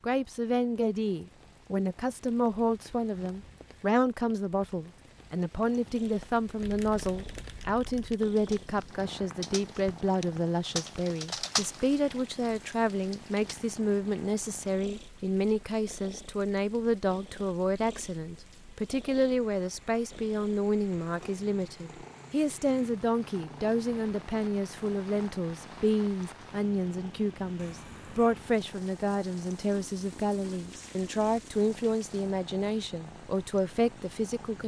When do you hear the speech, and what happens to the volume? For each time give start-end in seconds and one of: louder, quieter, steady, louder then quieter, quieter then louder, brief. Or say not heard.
0.0-34.6 steady.